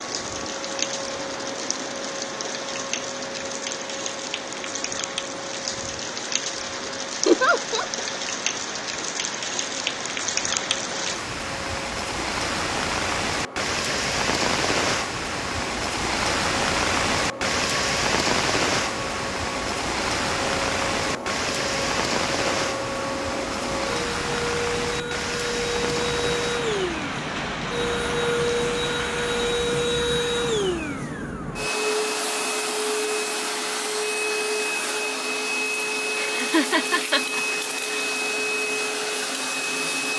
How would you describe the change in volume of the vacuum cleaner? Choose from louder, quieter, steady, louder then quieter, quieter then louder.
louder.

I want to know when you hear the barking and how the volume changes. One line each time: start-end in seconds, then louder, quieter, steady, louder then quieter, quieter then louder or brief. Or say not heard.
not heard.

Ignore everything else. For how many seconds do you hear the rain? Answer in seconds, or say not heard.
30 s.